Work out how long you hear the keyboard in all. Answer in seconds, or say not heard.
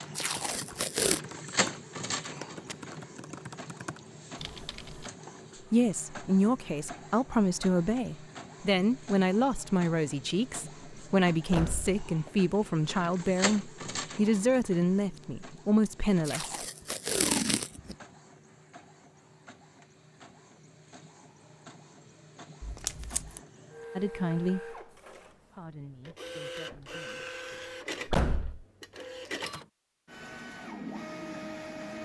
5 s.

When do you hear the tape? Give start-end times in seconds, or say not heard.
0.1-1.2, 16.2-17.9, 22.6-23.4.